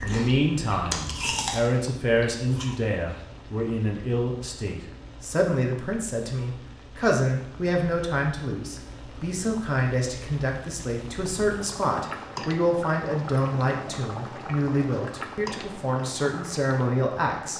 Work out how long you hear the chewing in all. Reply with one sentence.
The chewing can be heard for 3 seconds in total.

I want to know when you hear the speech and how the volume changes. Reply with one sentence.
The speech can be heard from 0.0 to 17.5 s, at a steady volume.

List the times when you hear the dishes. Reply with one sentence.
The dishes can't be heard in this clip.